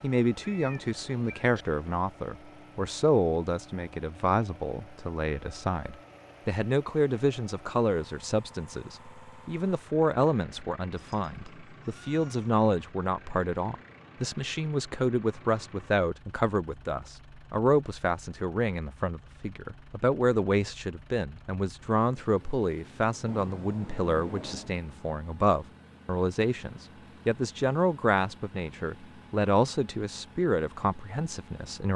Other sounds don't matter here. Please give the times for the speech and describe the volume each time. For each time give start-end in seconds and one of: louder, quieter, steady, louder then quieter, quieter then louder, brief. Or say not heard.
0.0-31.9 steady.